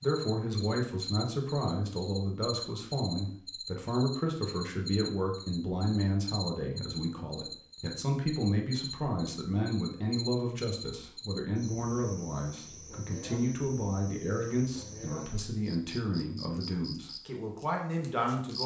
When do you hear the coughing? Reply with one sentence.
The coughing can't be heard in this clip.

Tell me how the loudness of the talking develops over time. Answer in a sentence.
The volume of the talking stays about the same.